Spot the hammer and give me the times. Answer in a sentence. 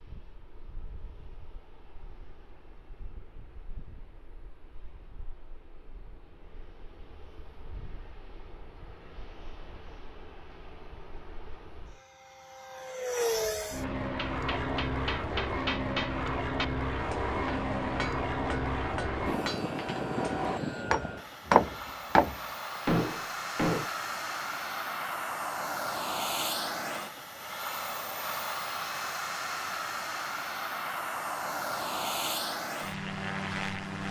The hammer can be heard from 14.2 to 23.9 s.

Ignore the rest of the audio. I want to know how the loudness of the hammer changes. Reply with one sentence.
The volume of the hammer goes up.